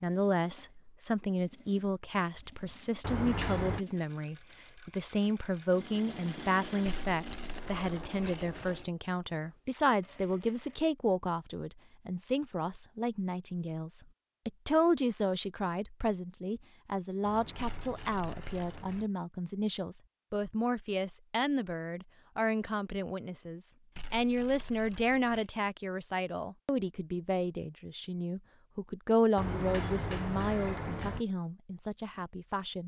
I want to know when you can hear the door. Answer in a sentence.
You can hear the door from 3.0 to 3.9 s, from 17.2 to 19.1 s and from 29.4 to 31.2 s.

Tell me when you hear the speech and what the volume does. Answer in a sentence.
The speech can be heard from 0.0 to 32.8 s, at a steady volume.